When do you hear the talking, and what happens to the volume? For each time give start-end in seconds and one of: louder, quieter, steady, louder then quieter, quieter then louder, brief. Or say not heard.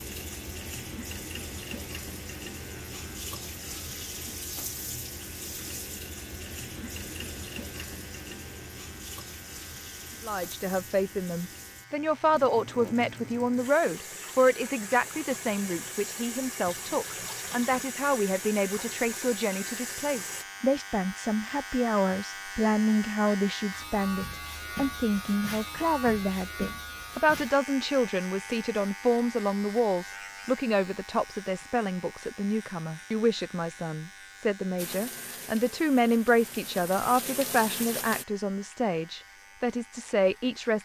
10.2-40.8 steady.